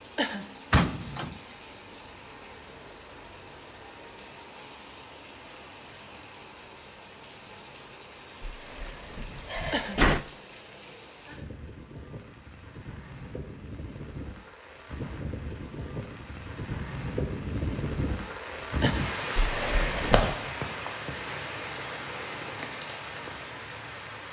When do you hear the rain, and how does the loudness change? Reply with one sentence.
You can hear the rain from 0.0 to 24.2 s, getting louder.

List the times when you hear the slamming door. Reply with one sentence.
You can hear the slamming door from 0.7 to 1.4 s, from 8.4 to 10.2 s and from 19.4 to 20.4 s.